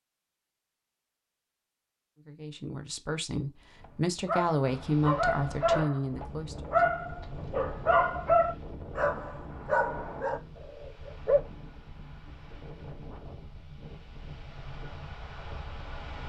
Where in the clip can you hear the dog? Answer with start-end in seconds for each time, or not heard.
3.8-11.4.